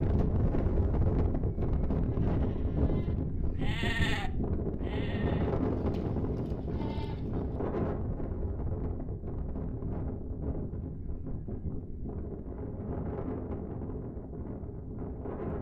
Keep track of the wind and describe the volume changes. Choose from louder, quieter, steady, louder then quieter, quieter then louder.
quieter.